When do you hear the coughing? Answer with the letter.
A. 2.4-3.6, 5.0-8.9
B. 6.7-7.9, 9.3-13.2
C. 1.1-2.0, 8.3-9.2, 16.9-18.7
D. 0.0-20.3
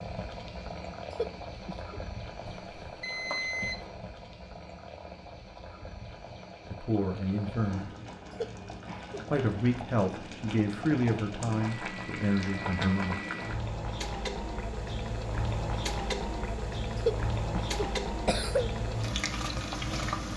C.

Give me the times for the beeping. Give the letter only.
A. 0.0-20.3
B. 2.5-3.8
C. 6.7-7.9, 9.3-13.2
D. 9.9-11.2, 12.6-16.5
B.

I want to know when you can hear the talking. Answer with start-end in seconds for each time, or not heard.
6.7-7.9, 9.3-13.2.